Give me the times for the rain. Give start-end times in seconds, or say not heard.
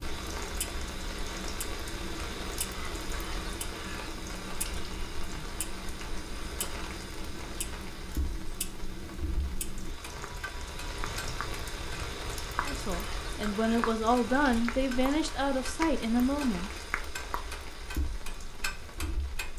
0.0-19.5.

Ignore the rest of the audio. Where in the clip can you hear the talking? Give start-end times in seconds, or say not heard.
12.7-16.7.